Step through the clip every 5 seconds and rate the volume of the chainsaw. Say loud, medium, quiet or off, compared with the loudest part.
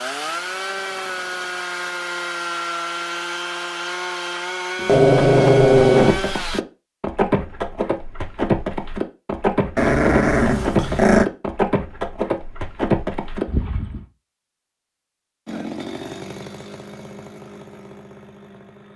loud, loud, off, medium.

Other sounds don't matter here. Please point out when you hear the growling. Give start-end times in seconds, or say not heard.
4.8-6.2, 9.8-11.2.